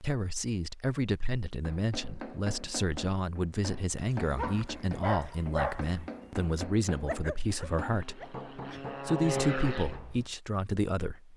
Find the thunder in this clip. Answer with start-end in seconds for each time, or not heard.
not heard.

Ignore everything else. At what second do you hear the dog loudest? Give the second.
6 s.